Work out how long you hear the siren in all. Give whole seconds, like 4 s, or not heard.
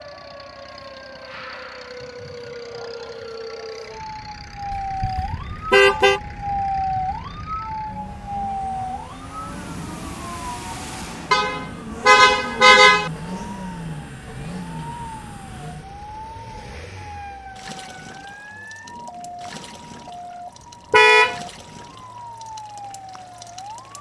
24 s.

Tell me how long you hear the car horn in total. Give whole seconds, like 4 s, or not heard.
4 s.